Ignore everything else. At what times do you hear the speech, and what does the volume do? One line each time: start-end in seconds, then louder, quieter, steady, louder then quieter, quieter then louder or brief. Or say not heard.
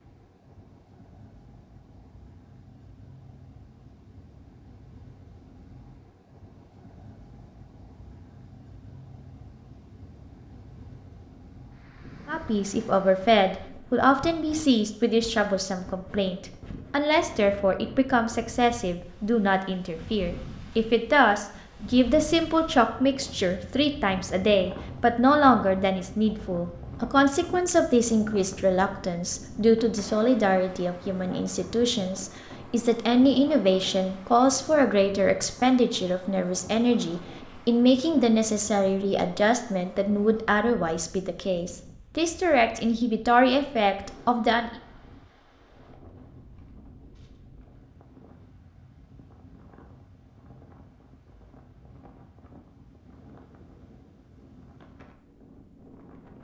12.2-44.7 steady.